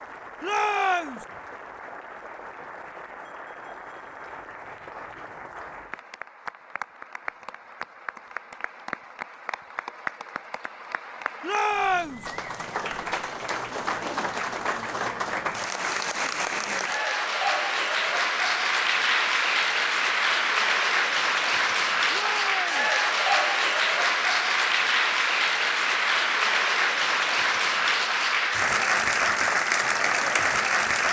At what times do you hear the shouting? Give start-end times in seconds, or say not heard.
0.4-1.2, 11.4-12.2, 22.1-22.9.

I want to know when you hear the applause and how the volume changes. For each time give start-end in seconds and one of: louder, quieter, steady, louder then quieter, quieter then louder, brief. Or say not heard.
0.0-31.0 louder.